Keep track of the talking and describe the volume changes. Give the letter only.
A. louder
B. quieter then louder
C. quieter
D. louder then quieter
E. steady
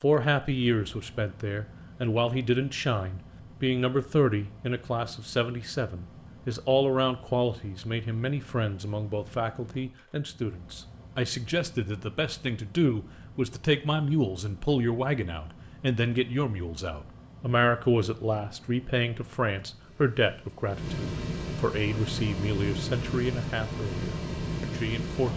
E.